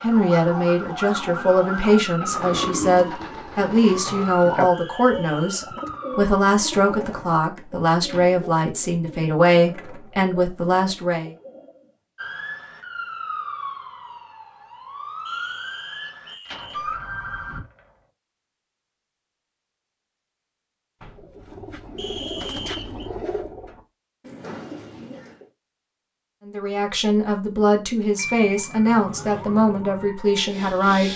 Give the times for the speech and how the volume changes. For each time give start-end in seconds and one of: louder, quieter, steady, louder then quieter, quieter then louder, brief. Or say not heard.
0.0-11.3 steady
26.4-31.1 steady.